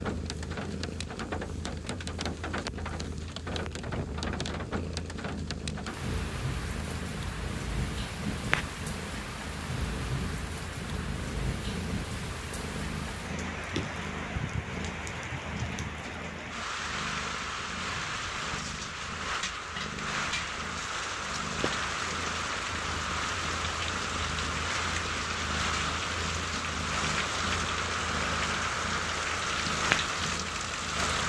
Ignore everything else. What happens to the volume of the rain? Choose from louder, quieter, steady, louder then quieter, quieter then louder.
louder.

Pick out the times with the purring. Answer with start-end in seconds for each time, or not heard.
0.0-31.2.